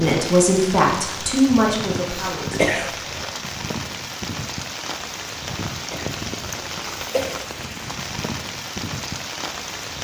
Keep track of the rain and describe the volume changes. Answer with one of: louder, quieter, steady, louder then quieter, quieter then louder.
steady.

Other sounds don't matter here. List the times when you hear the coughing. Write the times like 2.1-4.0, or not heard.
2.5-3.2, 5.8-7.4.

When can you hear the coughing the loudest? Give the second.
3 s.